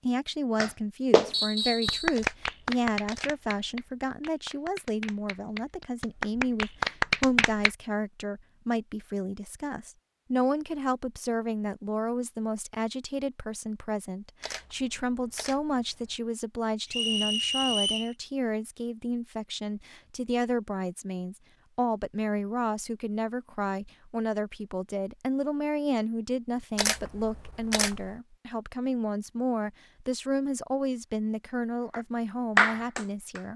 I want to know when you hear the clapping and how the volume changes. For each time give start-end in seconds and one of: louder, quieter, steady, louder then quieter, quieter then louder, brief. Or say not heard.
0.6-7.7 quieter then louder
31.9-33.5 brief.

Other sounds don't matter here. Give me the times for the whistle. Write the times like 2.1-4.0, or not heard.
1.3-2.1, 16.9-18.1.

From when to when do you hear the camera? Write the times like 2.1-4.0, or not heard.
2.1-3.9, 14.4-16.2, 26.8-28.1.